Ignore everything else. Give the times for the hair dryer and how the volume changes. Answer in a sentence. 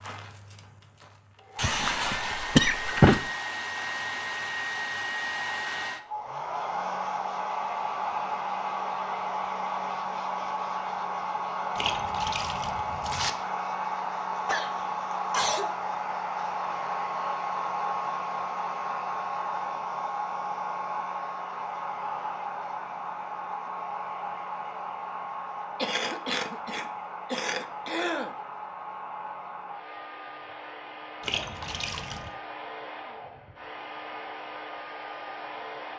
The hair dryer can be heard from 0.0 to 35.9 s, getting quieter.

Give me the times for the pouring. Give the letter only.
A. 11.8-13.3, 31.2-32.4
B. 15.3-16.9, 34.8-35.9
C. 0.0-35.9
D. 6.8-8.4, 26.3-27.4
A.